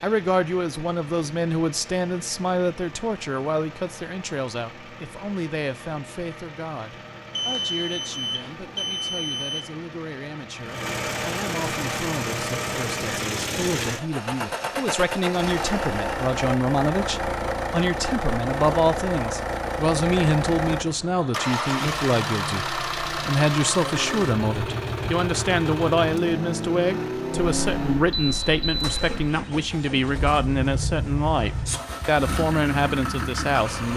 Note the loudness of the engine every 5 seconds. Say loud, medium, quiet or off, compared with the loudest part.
quiet, quiet, loud, loud, loud, loud, loud.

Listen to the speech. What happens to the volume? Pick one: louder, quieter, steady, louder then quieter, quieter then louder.
quieter then louder.